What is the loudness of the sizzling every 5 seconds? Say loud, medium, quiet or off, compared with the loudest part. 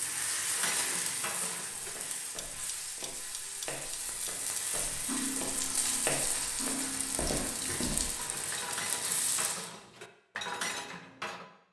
loud, loud, off.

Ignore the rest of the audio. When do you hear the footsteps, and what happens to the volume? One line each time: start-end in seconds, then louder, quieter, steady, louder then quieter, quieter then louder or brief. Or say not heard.
1.8-8.2 louder.